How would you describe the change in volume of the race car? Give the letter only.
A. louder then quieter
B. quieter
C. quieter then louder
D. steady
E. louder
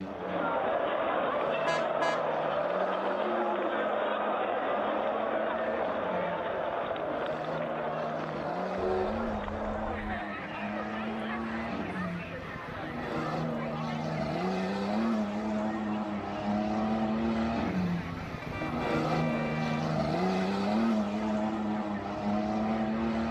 E.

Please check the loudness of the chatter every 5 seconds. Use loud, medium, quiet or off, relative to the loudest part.
loud, loud, medium, quiet, quiet.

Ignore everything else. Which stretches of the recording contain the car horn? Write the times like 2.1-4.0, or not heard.
1.6-2.2, 8.8-10.0, 18.4-19.9.